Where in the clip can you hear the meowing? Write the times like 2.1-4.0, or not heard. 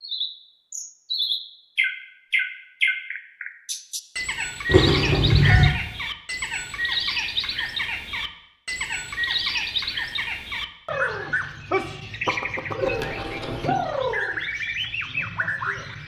4.7-5.8, 12.8-13.8.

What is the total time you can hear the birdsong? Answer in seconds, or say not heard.
16 s.